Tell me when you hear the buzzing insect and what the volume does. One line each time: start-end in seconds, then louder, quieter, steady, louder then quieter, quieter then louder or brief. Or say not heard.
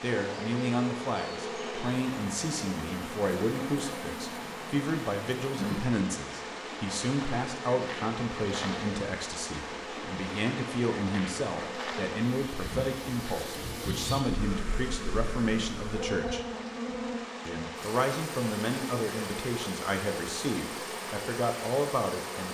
0.0-22.5 steady.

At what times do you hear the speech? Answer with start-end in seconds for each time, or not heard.
0.0-16.4, 17.4-22.5.